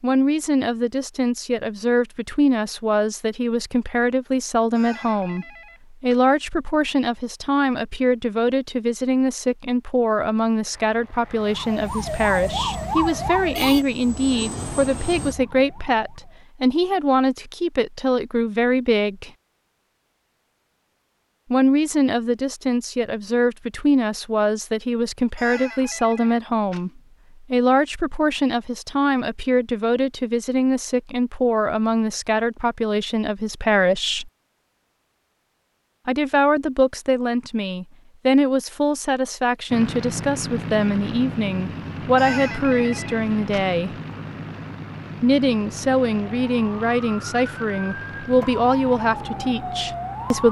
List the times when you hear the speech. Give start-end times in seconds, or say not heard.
0.0-19.3, 21.5-34.3, 36.0-43.9, 45.2-50.4.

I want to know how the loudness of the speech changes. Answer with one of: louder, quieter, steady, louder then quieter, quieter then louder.
steady.